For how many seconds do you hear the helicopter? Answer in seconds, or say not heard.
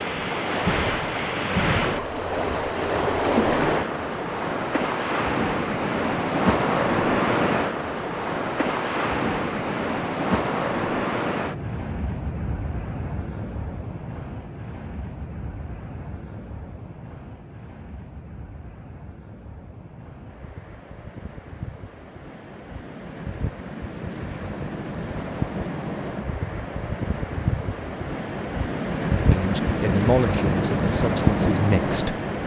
not heard.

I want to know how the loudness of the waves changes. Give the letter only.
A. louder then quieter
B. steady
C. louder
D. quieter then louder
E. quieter
D.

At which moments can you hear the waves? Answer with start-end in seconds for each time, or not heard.
0.0-32.4.